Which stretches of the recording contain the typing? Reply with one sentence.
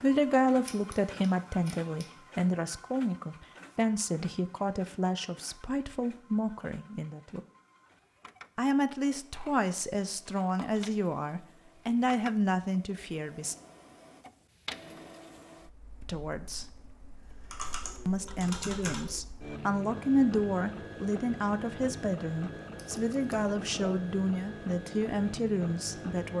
The typing can be heard from 17.4 to 19.1 s.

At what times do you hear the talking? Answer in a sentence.
The talking can be heard from 0.0 to 7.4 s, from 8.6 to 13.6 s, from 16.0 to 16.6 s and from 18.1 to 26.3 s.